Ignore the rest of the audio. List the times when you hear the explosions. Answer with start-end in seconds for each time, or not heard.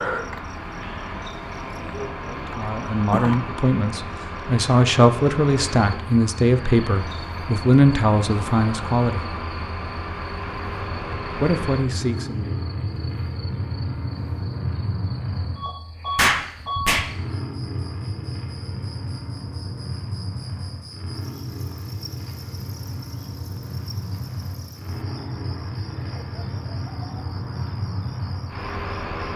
16.1-17.1.